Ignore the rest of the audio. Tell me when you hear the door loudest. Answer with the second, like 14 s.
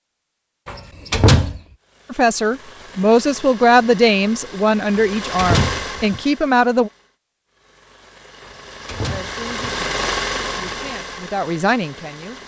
1 s.